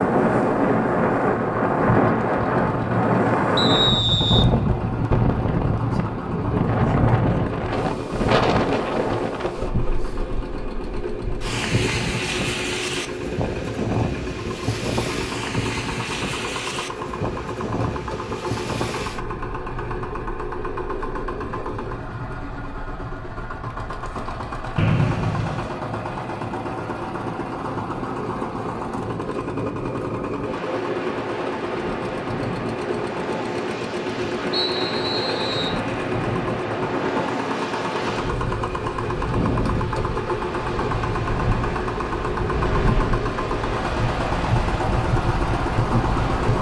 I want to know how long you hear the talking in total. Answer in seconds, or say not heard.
not heard.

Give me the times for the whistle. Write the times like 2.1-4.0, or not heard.
3.5-4.5, 24.8-25.8, 34.5-35.8.